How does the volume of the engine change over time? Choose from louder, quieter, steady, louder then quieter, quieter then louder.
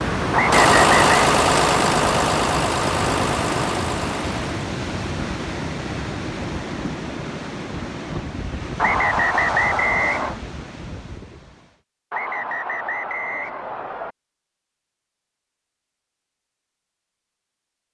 quieter.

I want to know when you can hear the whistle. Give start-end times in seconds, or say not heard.
0.3-1.1, 8.8-10.3, 12.1-14.2.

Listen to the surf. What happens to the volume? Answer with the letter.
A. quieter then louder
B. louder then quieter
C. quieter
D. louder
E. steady
C.